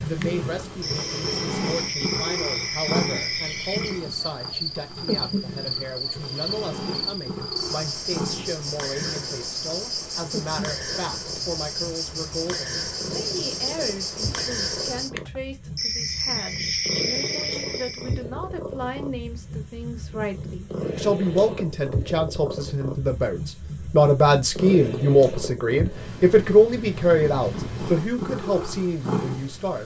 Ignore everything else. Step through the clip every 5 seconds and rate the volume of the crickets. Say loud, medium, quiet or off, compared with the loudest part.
loud, loud, loud, loud, off, off.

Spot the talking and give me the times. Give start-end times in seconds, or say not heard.
0.0-29.8.